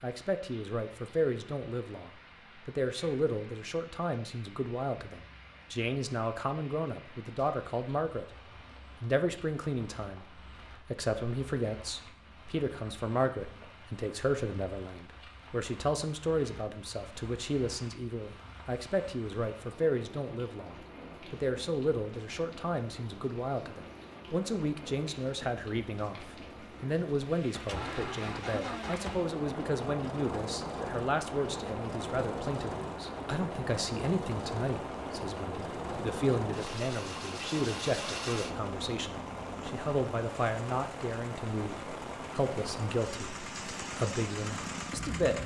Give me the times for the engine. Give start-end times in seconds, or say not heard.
27.5-45.4.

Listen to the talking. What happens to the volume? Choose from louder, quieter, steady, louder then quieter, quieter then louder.
steady.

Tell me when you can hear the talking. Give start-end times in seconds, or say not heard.
0.0-8.3, 9.0-45.4.